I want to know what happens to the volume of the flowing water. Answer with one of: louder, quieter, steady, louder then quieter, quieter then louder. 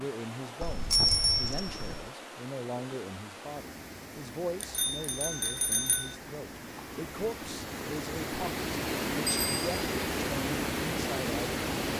louder.